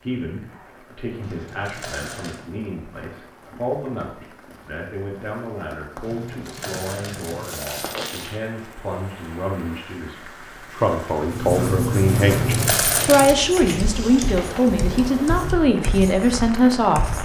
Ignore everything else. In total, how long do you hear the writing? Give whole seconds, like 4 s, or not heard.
6 s.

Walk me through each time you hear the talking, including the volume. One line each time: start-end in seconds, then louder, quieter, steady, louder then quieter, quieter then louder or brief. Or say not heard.
0.0-17.2 louder.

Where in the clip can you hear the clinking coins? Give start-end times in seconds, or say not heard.
1.2-2.4, 6.0-8.4, 12.3-13.3.